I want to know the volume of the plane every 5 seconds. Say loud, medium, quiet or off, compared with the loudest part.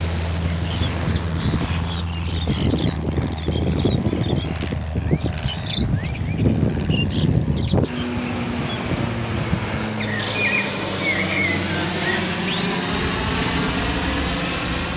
medium, medium, loud.